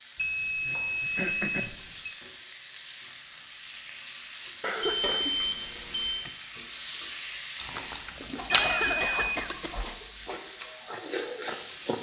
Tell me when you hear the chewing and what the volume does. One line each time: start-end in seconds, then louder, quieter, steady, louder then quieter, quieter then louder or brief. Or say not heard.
7.5-11.9 quieter then louder.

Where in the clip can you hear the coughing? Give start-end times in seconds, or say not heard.
0.7-1.8, 4.6-6.3, 8.3-10.4.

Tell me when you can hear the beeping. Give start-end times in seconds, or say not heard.
0.1-2.1, 4.8-6.2, 8.5-9.8.